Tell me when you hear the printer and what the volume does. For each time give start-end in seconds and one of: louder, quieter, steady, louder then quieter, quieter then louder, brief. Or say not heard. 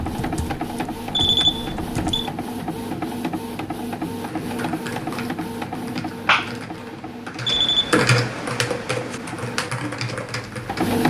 0.0-11.0 quieter.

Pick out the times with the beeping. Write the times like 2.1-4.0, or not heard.
1.1-2.3, 7.5-8.0.